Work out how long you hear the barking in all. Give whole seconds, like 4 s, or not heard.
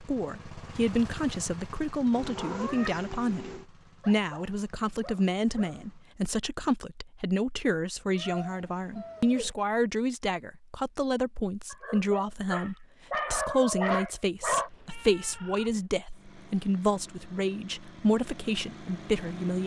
5 s.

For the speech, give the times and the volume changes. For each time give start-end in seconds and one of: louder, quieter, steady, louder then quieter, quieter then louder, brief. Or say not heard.
0.0-19.6 steady.